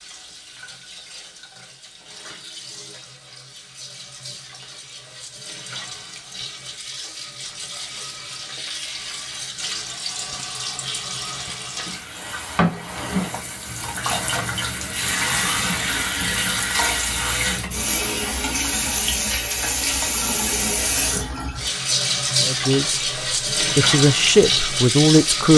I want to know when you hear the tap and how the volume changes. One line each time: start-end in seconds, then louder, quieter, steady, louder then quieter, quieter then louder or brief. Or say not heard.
0.0-25.5 louder.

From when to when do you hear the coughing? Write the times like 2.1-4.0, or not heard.
not heard.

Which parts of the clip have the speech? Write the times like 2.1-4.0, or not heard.
22.4-23.0, 23.6-25.5.